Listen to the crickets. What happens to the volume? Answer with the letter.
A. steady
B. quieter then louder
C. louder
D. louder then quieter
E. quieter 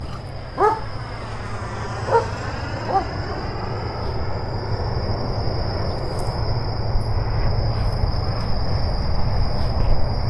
C.